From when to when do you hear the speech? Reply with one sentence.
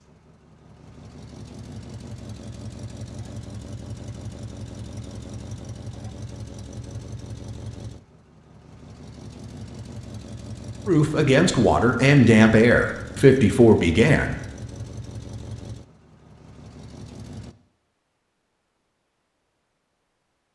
The speech can be heard from 10.8 to 14.3 s.